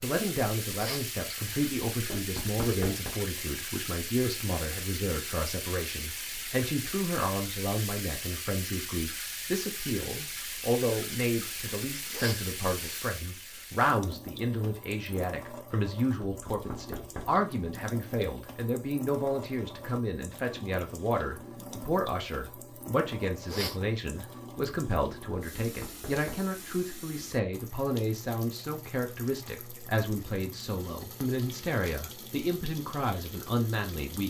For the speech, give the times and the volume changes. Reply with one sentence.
The speech can be heard from 0.0 to 34.2 s, at a steady volume.